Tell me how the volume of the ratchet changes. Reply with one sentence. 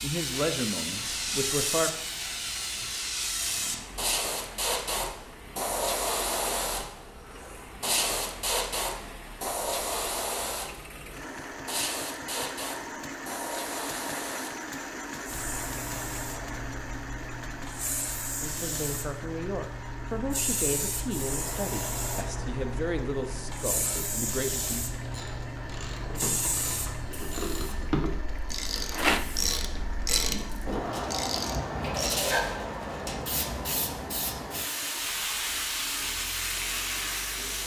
The loudness of the ratchet goes up.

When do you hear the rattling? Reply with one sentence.
You can hear the rattling from 28.9 to 29.4 s.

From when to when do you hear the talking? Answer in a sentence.
You can hear the talking from 0.0 to 1.9 s and from 18.4 to 24.8 s.